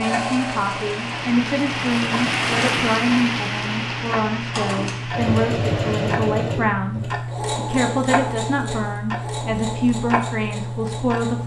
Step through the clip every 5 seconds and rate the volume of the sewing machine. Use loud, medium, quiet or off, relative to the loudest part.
loud, loud, medium.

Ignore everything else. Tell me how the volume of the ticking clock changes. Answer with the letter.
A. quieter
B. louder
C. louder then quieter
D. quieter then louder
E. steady
B.